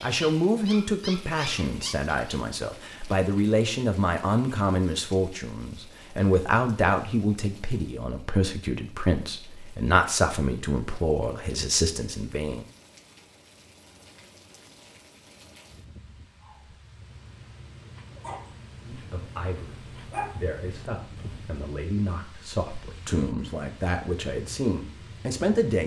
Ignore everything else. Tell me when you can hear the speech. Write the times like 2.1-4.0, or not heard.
0.0-12.7, 18.9-25.8.